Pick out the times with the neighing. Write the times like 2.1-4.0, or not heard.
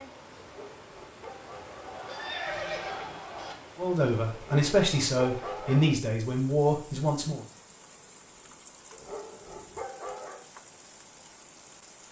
1.8-3.5.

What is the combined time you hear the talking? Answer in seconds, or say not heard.
4 s.